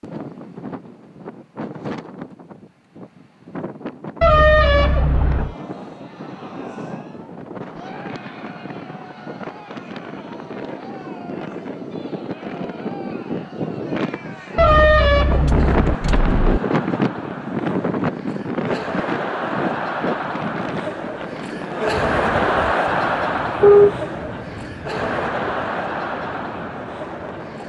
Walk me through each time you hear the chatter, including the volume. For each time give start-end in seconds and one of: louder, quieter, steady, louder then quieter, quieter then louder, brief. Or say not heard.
5.2-27.6 louder.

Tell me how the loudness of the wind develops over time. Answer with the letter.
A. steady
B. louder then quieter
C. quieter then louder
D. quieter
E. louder
B.